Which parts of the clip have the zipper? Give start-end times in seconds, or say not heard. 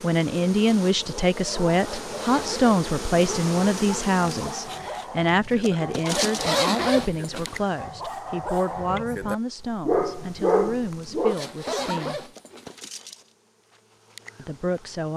1.8-2.6, 6.0-7.6, 11.2-12.8.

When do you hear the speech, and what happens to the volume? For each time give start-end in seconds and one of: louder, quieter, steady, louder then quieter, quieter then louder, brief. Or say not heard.
0.0-12.3 quieter
14.3-15.1 brief.